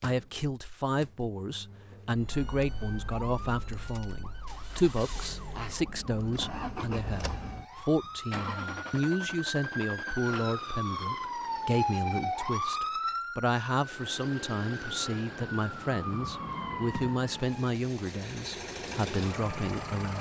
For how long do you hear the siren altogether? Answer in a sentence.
The siren can be heard for 16 seconds in total.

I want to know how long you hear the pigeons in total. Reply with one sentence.
You can't hear the pigeons here.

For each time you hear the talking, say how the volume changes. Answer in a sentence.
You can hear the talking from 0.0 to 20.1 s, at a steady volume.